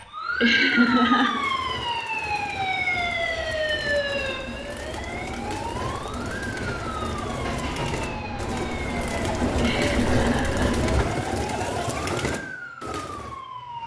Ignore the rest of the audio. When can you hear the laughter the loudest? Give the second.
1 s.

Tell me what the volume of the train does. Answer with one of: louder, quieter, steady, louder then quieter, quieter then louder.
louder.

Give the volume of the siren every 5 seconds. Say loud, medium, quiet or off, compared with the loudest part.
loud, medium, medium.